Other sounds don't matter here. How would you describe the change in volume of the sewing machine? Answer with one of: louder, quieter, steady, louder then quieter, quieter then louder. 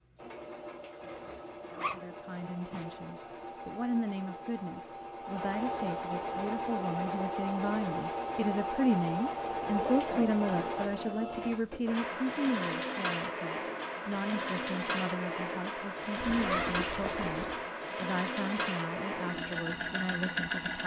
louder.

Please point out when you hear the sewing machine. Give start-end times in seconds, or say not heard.
0.0-20.8.